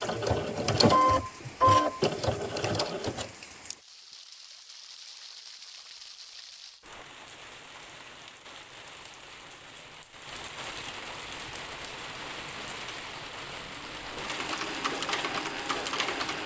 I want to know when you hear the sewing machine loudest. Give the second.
1 s.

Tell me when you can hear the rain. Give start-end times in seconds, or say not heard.
0.0-16.4.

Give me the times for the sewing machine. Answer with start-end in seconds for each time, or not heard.
0.0-3.3, 14.1-16.4.